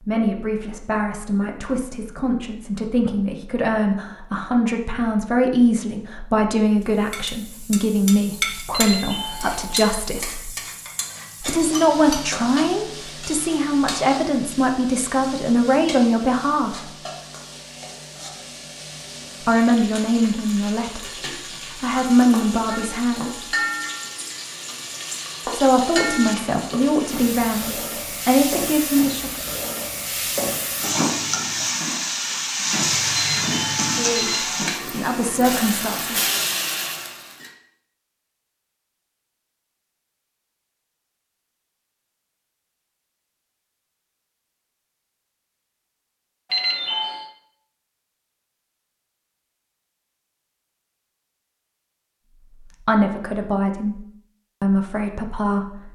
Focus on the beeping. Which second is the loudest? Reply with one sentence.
The volume of the beeping peaks at 47 seconds.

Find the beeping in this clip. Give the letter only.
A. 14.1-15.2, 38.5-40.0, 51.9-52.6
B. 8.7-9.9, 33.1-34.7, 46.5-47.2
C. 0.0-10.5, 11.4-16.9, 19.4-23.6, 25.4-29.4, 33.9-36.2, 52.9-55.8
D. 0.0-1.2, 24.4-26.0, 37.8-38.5
B.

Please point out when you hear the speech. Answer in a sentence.
You can hear the speech from 0.0 to 10.5 s, from 11.4 to 16.9 s, from 19.4 to 23.6 s, from 25.4 to 29.4 s, from 33.9 to 36.2 s and from 52.9 to 55.8 s.